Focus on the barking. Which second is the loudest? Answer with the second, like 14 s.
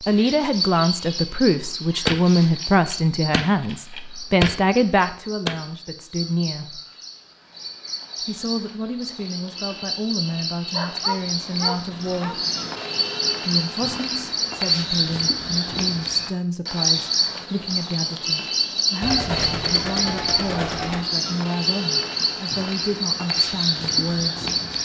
11 s.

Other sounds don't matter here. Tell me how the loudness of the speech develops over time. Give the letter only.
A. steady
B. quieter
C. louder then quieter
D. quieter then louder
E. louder
B.